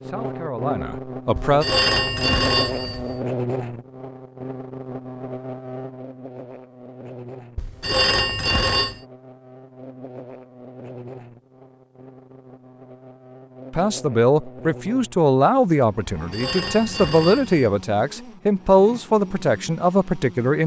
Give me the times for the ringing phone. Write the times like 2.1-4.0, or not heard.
1.4-3.2, 7.5-9.0, 16.1-17.7.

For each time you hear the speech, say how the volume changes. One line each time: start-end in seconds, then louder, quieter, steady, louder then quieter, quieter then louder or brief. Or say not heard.
0.0-1.6 brief
13.7-20.6 steady.